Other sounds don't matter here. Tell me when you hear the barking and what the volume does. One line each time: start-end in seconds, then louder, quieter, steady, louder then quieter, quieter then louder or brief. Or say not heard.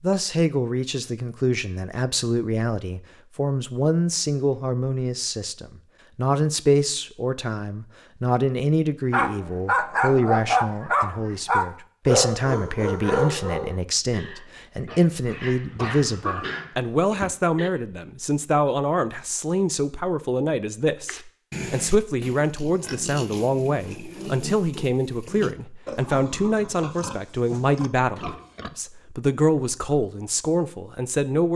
9.1-17.7 quieter then louder.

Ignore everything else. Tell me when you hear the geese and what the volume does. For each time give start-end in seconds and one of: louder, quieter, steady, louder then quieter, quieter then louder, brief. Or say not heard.
not heard.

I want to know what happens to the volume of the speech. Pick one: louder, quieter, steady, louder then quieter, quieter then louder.
steady.